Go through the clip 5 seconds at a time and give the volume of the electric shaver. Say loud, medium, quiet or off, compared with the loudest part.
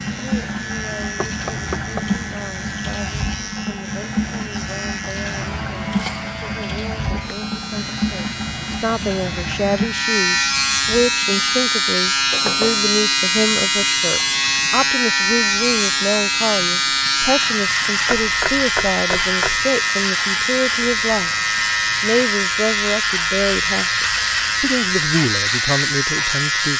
quiet, quiet, loud, loud, loud, loud.